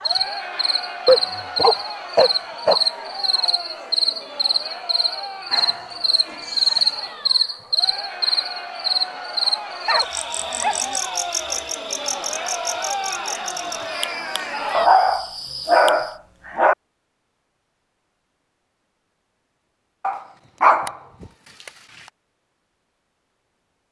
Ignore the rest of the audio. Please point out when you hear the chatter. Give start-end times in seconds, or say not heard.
0.0-14.9.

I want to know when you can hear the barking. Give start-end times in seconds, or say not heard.
1.1-2.8, 5.5-7.0, 9.8-11.0, 14.7-16.8, 20.0-21.7.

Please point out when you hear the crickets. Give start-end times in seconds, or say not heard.
0.0-16.2.